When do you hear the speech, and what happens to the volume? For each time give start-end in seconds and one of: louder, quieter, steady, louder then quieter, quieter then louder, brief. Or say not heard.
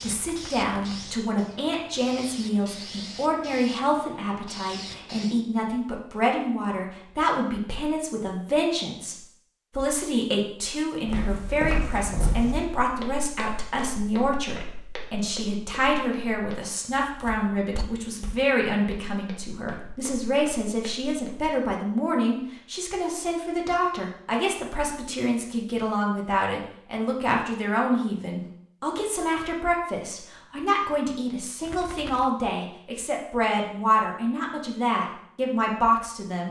0.0-36.4 steady.